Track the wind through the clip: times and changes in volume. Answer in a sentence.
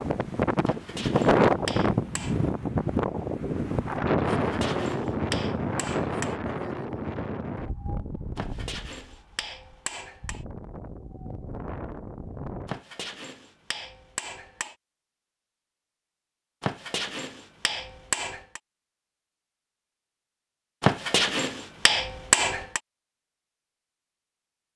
You can hear the wind from 0.0 to 12.8 s, getting quieter.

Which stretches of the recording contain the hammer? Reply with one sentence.
You can hear the hammer from 0.7 to 2.4 s, from 4.3 to 6.3 s, from 8.3 to 10.4 s, from 12.7 to 14.8 s, from 16.6 to 18.6 s and from 20.8 to 22.8 s.